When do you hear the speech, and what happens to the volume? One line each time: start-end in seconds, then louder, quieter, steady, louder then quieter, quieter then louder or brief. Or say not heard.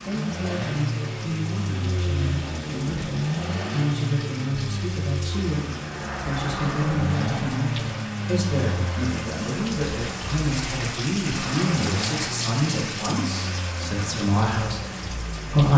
0.1-15.7 steady.